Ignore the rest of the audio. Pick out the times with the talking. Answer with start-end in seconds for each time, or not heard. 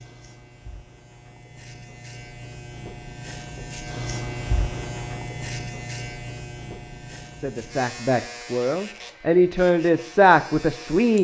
7.4-11.1.